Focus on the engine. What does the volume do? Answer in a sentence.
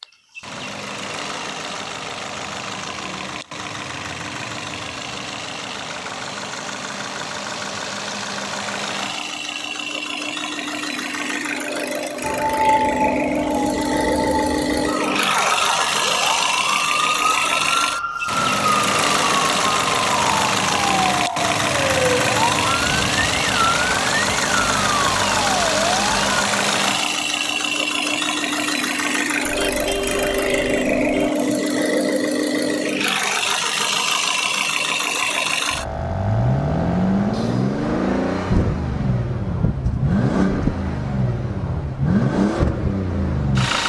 The loudness of the engine goes up.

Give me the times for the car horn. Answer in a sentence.
The car horn can be heard from 29.4 to 31.3 s.